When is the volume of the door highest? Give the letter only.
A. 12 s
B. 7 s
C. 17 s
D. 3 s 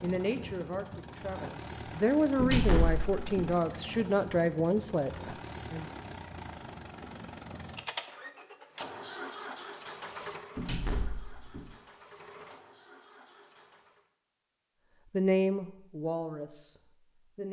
D.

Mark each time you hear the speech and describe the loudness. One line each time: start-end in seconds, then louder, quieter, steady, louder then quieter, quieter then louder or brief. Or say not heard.
0.0-5.9 louder
15.1-17.4 brief.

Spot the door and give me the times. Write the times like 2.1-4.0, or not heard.
2.4-3.5, 10.6-11.8.